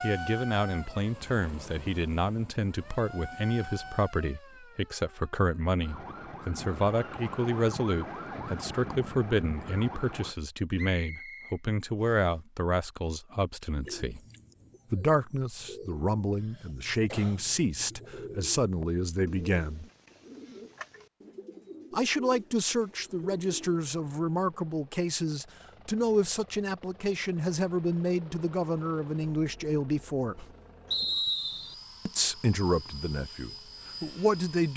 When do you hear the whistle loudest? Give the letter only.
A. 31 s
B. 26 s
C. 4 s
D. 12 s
A.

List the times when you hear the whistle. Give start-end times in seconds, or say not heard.
10.8-12.3, 30.9-31.8.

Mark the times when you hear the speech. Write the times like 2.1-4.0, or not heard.
0.0-14.2, 14.9-19.9, 21.9-30.4, 32.0-34.7.